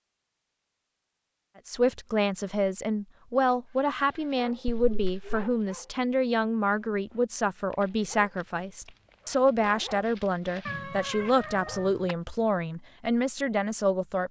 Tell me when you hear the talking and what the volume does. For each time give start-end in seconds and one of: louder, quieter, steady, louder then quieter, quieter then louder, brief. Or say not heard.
1.6-14.2 steady.